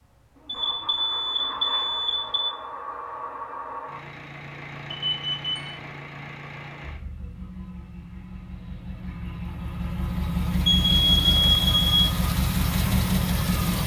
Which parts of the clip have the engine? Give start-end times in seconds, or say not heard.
0.0-13.8.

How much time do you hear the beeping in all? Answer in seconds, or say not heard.
4 s.